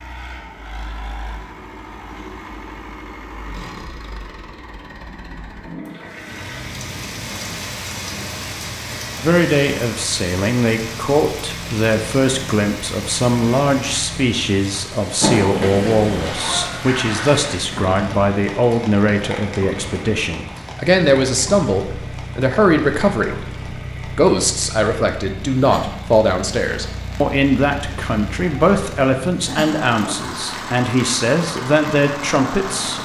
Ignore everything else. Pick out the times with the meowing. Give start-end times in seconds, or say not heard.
15.2-16.2.